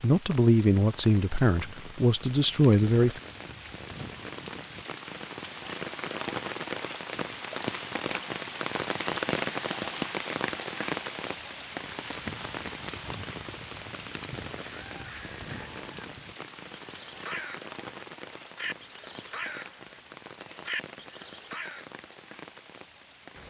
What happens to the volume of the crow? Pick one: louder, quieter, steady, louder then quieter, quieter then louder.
louder.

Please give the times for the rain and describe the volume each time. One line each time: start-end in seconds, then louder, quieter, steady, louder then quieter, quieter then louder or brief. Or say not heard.
0.0-23.4 louder then quieter.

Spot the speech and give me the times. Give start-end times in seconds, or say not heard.
0.0-3.2.